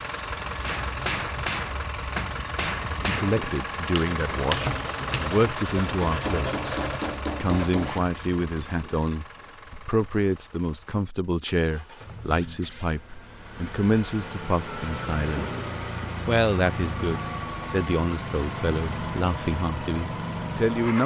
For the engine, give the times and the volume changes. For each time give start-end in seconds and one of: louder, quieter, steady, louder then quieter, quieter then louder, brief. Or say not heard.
0.0-21.0 quieter then louder.